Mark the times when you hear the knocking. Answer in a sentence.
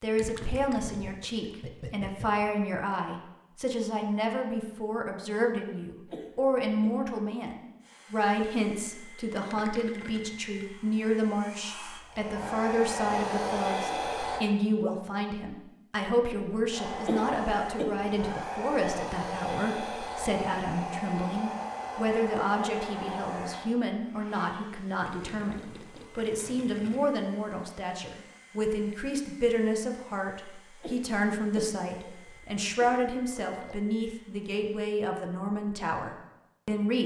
You can't hear the knocking here.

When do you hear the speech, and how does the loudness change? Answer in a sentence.
You can hear the speech from 0.0 to 37.0 s, at a steady volume.